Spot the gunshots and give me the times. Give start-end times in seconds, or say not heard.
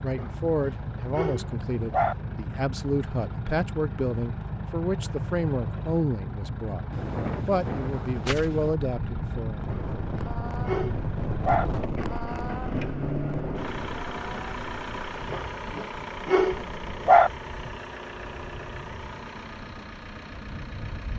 6.9-8.7.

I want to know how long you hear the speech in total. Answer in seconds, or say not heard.
10 s.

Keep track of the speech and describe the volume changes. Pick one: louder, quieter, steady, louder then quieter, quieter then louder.
steady.